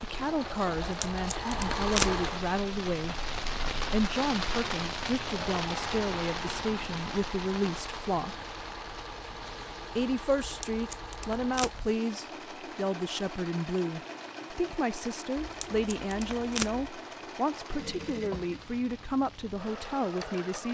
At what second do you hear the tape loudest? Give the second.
2 s.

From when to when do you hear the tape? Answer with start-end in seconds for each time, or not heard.
0.8-2.2, 10.4-11.9, 15.3-16.9.